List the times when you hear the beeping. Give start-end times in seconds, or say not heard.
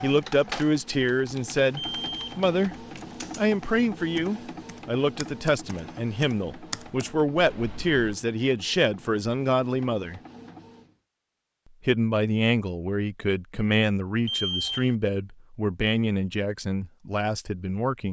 1.8-2.2, 14.2-14.9.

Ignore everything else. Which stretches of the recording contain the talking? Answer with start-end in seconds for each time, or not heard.
0.0-10.2, 11.8-18.0.